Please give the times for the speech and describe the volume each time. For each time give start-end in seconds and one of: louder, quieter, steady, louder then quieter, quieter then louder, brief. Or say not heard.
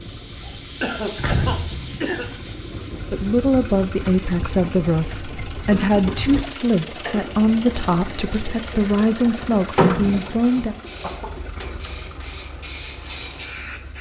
3.1-10.8 steady.